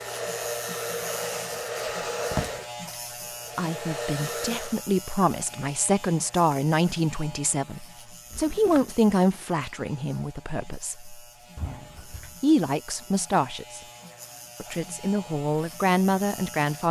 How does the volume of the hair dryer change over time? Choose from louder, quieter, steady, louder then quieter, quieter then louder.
quieter then louder.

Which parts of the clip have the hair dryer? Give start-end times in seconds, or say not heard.
0.0-4.8.